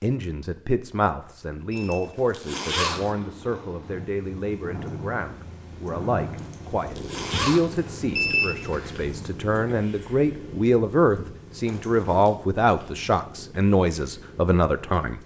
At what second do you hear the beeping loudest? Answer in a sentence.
The volume of the beeping peaks at 8 seconds.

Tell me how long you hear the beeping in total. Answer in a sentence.
The beeping can be heard for 2 seconds in total.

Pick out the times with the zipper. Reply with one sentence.
You can hear the zipper from 1.8 to 3.1 s, from 6.3 to 7.8 s and from 11.7 to 12.3 s.